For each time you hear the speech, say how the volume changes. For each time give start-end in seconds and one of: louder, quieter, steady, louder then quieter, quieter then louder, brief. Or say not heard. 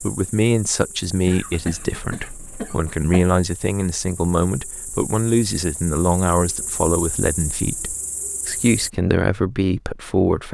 0.0-10.4 steady.